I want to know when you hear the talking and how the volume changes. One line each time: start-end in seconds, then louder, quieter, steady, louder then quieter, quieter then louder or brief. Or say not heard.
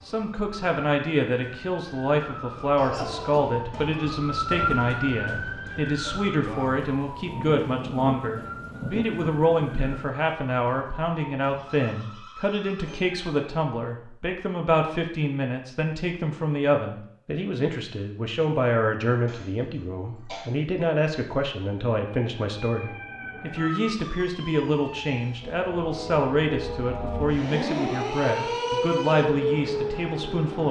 0.1-30.6 steady.